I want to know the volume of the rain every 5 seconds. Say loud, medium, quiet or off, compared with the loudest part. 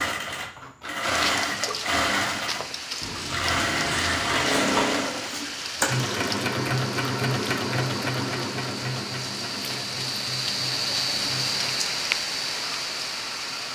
medium, medium, loud.